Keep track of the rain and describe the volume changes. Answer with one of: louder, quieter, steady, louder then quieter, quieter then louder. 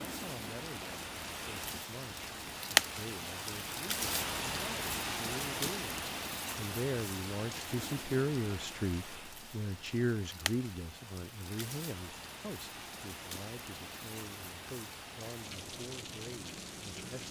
quieter.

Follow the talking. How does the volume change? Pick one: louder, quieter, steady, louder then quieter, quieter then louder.
louder then quieter.